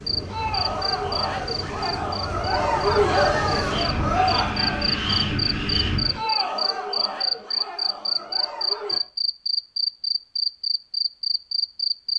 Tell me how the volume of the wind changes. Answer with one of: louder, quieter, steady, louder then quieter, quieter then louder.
louder.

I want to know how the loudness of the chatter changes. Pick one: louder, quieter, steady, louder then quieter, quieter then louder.
louder then quieter.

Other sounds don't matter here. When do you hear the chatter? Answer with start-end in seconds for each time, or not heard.
0.1-9.0.